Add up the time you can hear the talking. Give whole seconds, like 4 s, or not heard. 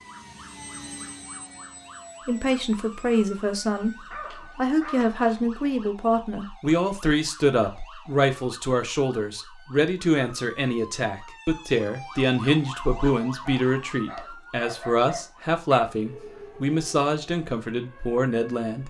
16 s.